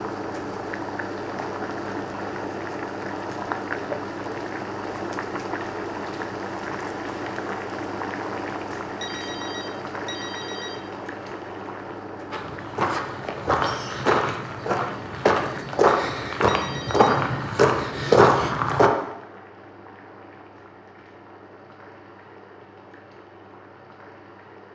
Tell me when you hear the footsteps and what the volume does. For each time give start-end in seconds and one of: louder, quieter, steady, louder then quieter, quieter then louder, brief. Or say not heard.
12.3-18.9 louder.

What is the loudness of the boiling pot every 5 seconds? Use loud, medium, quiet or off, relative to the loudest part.
loud, loud, medium, medium, quiet.